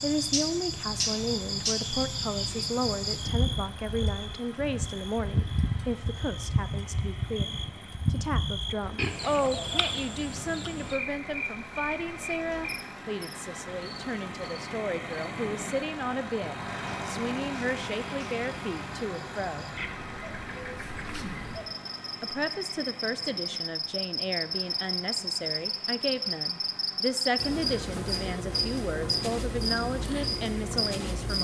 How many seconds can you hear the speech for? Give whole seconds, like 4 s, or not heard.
29 s.